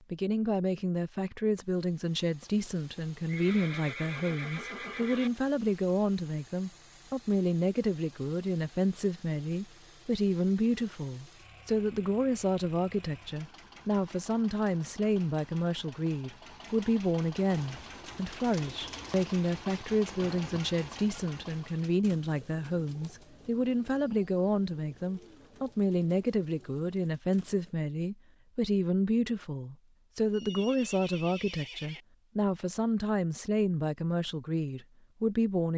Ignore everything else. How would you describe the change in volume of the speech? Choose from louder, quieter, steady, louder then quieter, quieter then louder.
steady.